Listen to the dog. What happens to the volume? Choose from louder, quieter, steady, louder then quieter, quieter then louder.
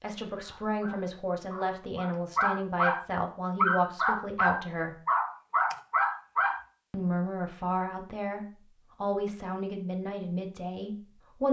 louder.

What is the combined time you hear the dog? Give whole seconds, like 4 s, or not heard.
6 s.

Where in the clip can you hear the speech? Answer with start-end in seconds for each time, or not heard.
0.0-5.0, 6.9-11.4.